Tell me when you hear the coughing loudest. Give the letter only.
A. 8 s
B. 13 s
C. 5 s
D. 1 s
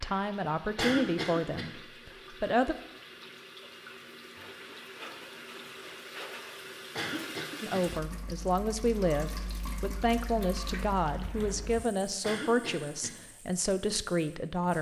D.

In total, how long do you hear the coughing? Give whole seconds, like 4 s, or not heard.
3 s.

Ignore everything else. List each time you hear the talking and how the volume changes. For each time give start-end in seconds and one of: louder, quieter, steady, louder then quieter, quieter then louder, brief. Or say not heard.
0.0-2.8 brief
7.6-14.7 steady.